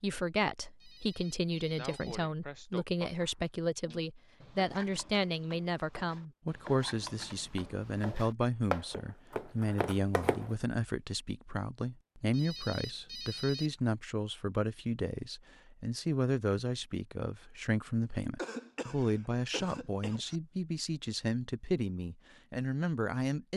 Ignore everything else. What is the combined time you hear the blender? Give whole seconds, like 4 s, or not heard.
not heard.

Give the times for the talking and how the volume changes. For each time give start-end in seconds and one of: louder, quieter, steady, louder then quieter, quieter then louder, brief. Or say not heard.
0.0-23.5 steady.